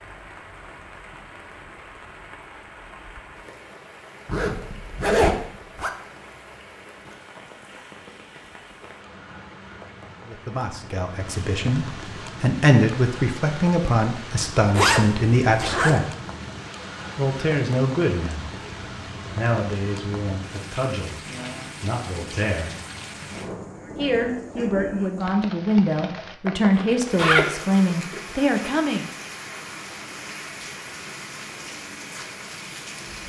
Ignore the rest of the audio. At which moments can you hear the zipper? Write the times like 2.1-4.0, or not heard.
4.2-5.9, 14.4-16.0, 26.8-28.2.